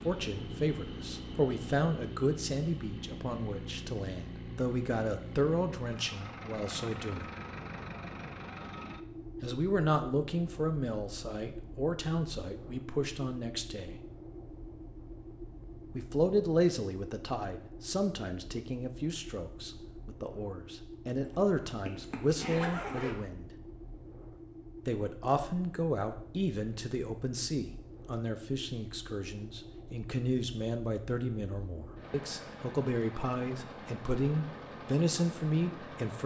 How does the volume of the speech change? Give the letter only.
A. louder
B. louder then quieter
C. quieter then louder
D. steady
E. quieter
D.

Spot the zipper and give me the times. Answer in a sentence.
The zipper can be heard from 21.2 to 23.1 s.